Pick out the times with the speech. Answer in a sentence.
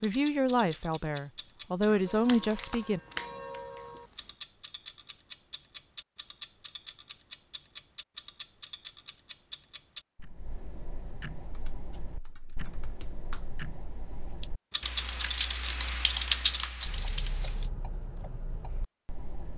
The speech can be heard from 0.0 to 3.0 s.